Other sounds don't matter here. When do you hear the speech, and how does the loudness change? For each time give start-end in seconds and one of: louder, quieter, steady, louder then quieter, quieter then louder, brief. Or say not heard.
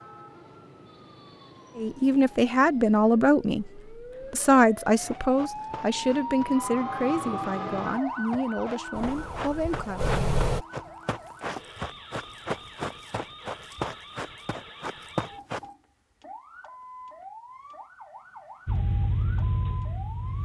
1.8-10.1 quieter.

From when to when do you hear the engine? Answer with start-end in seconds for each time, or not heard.
8.9-10.7, 18.6-20.3.